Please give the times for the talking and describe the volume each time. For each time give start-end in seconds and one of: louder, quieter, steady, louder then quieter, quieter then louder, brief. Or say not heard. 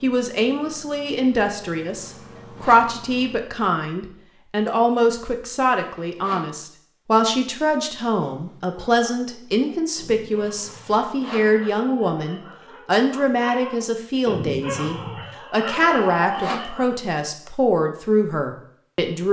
0.0-19.2 steady.